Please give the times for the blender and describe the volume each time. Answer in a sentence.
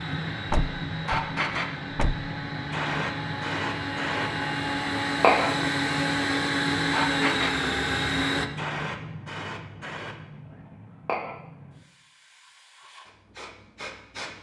The blender can be heard from 0.0 to 8.5 s, getting louder.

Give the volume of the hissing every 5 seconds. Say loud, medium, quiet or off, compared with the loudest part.
loud, loud, medium.